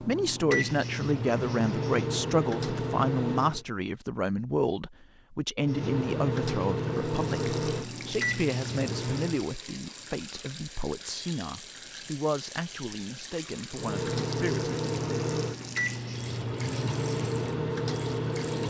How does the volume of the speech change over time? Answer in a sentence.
The loudness of the speech goes down.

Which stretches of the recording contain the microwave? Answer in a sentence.
You can hear the microwave from 0.0 to 3.6 s, from 5.6 to 9.4 s and from 13.7 to 18.6 s.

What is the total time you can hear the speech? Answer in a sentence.
The speech can be heard for 15 seconds in total.